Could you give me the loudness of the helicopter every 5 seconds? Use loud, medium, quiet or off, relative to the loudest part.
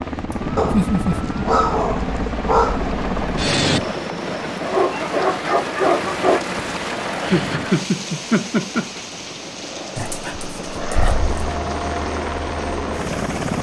loud, medium, loud.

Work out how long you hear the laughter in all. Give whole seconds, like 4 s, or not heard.
3 s.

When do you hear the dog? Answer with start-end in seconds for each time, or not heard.
0.6-2.9, 4.6-6.4, 9.9-11.6.